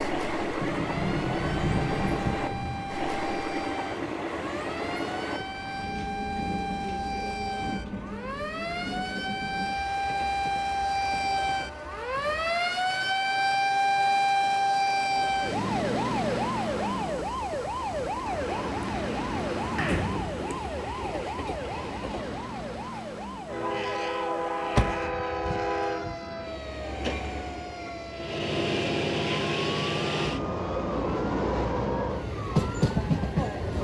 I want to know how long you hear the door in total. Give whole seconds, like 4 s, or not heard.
6 s.